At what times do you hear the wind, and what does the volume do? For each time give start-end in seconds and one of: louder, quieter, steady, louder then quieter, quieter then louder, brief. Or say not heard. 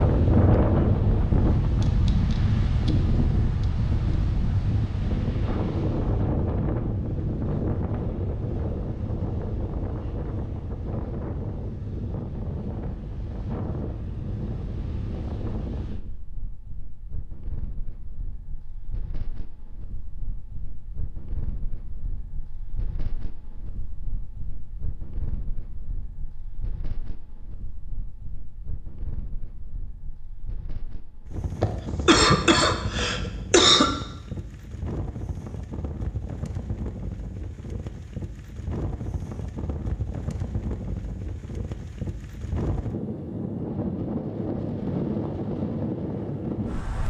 0.0-47.0 quieter then louder.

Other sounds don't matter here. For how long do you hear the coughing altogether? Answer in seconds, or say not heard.
2 s.